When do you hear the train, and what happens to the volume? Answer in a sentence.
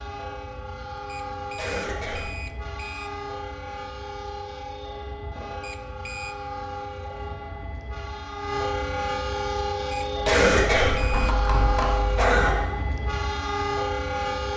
You can hear the train from 0.0 to 14.5 s, getting louder.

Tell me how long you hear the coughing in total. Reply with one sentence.
You can hear the coughing for 3 seconds altogether.